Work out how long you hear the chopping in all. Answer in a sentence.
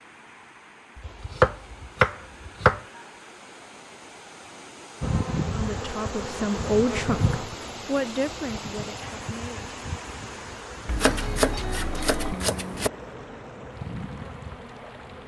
You can hear the chopping for 4 seconds altogether.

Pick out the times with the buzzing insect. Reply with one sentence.
You can hear the buzzing insect from 5.0 to 15.2 s.